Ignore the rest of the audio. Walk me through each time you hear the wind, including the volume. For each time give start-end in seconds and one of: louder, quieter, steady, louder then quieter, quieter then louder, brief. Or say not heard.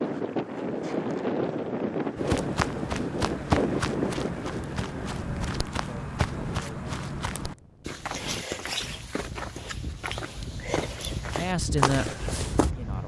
0.0-13.0 quieter then louder.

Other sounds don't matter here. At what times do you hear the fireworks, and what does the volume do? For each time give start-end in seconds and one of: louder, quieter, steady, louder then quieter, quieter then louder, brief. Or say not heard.
not heard.